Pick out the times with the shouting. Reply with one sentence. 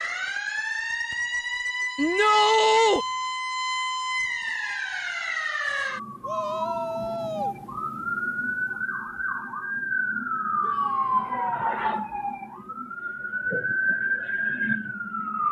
The shouting can be heard from 1.9 to 3.0 s, from 6.2 to 7.5 s and from 10.6 to 11.7 s.